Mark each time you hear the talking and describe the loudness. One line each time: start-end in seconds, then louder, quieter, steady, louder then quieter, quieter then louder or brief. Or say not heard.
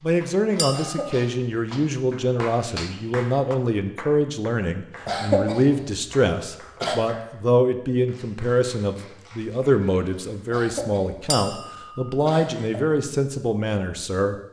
0.0-14.3 steady.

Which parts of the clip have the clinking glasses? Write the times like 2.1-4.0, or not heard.
0.6-1.1, 11.3-12.1.